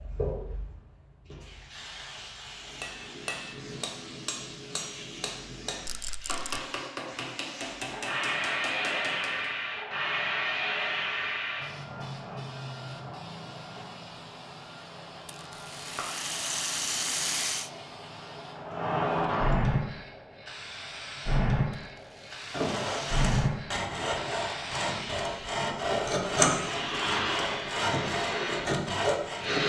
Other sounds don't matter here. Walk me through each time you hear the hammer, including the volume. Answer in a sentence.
The hammer can be heard from 2.5 to 9.5 s, at a steady volume.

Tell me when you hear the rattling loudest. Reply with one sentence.
The loudest moment of the rattling is at 17 seconds.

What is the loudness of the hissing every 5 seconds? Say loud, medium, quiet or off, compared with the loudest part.
medium, loud, loud, loud, loud, loud.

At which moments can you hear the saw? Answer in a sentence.
You can hear the saw from 22.5 to 29.6 s.